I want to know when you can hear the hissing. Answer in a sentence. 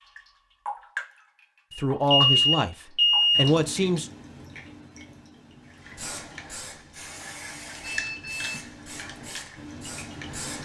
You can hear the hissing from 5.8 to 10.6 s.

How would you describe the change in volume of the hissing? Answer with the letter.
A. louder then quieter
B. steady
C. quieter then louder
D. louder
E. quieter
A.